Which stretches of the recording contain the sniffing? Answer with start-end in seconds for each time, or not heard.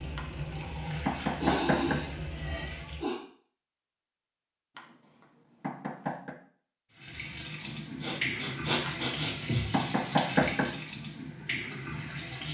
1.4-3.2, 7.7-9.8.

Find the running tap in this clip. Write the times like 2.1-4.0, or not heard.
0.0-3.0, 7.0-12.4.